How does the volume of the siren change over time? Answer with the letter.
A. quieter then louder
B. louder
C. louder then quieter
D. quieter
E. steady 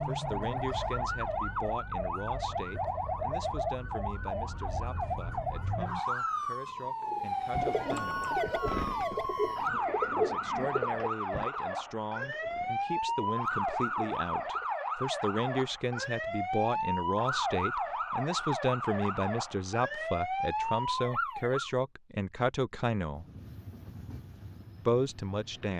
E.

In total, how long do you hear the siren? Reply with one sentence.
The siren can be heard for 22 seconds in total.